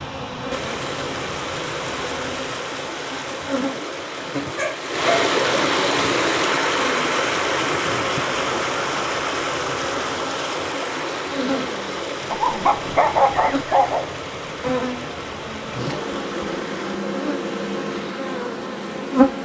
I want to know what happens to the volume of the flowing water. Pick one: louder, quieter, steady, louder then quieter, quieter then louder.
louder then quieter.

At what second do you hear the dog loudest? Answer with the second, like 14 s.
13 s.